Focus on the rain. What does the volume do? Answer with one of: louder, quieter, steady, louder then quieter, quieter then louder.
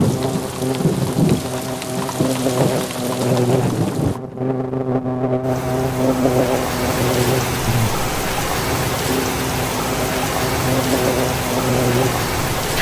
steady.